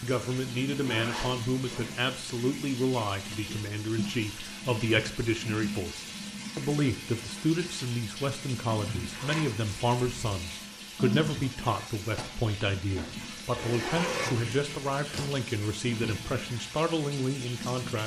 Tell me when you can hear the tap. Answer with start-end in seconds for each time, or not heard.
0.0-18.0.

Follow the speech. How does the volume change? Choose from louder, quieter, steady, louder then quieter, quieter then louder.
steady.